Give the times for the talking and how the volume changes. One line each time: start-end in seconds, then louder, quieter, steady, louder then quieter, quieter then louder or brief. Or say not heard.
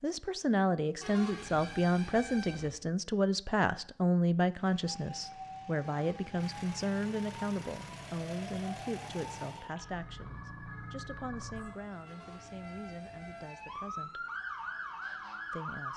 0.0-14.2 quieter
15.5-15.9 brief.